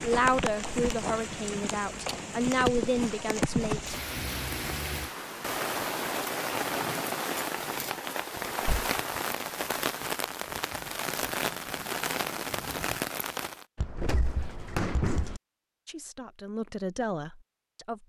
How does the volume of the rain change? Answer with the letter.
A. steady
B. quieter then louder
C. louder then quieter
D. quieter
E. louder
A.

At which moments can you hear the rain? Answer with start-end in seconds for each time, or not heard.
0.0-13.7.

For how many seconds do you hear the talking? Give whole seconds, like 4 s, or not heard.
6 s.